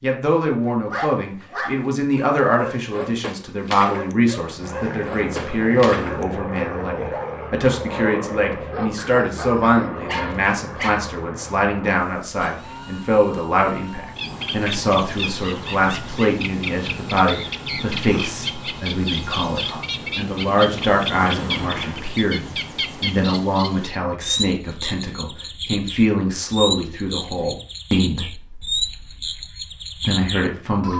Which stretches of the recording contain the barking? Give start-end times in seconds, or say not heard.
0.7-11.0.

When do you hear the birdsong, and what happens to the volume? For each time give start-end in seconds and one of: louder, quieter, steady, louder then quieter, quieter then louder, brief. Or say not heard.
14.1-30.9 steady.